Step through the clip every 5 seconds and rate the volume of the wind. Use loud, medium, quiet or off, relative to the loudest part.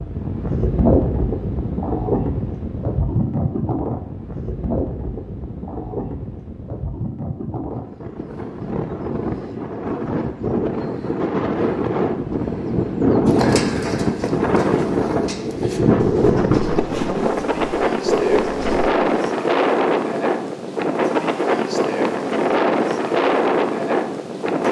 loud, medium, loud, loud, loud.